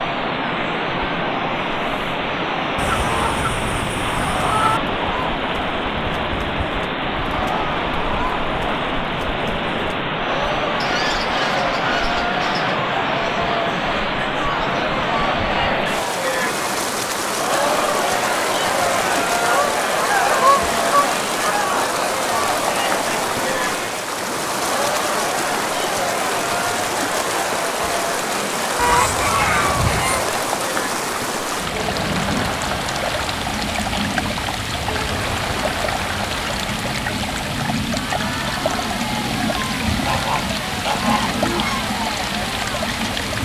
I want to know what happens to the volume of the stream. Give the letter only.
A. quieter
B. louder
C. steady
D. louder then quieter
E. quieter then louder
C.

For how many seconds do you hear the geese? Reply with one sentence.
You can hear the geese for 10 seconds altogether.